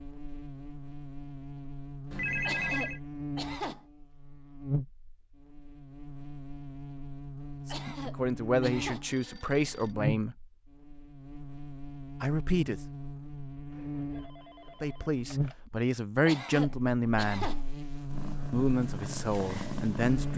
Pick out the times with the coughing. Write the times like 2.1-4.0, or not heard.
2.4-3.9, 7.7-9.1, 16.2-17.6.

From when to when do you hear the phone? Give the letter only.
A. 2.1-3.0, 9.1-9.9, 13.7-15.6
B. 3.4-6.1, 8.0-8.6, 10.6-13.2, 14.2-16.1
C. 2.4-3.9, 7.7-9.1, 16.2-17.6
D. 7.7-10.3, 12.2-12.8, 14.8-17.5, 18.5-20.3
A.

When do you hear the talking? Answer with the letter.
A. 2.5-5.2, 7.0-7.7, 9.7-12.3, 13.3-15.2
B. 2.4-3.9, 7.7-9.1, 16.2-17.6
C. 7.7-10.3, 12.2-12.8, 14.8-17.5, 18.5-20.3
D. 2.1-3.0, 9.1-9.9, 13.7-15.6
C.